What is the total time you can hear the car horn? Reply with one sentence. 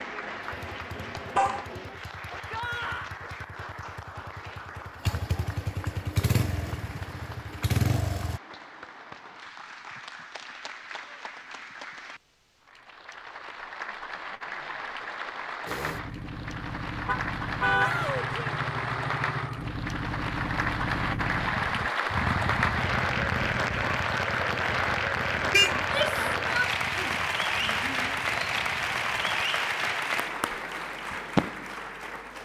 You can hear the car horn for 3 seconds altogether.